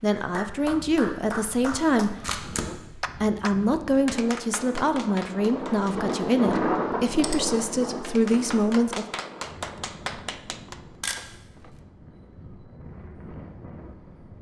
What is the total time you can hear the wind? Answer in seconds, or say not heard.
14 s.